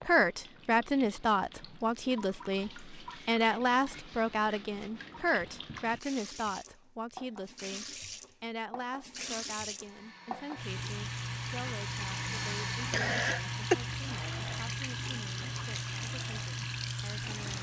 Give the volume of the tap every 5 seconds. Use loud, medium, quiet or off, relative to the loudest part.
quiet, medium, loud, loud.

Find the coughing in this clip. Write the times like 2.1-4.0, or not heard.
12.9-13.8.